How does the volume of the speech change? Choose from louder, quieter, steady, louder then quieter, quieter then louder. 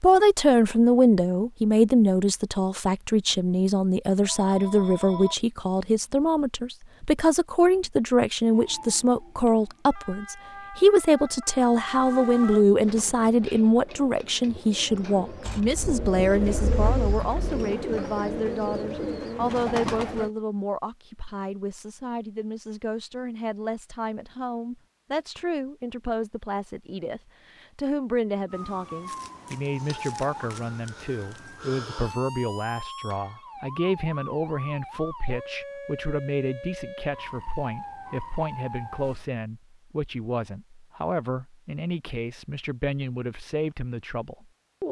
quieter.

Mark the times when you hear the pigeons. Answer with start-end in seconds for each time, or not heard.
12.8-20.3.